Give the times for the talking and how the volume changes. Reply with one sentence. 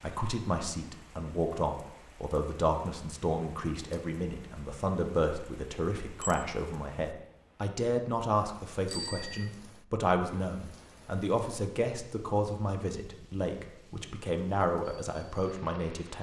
You can hear the talking from 0.0 to 16.1 s, at a steady volume.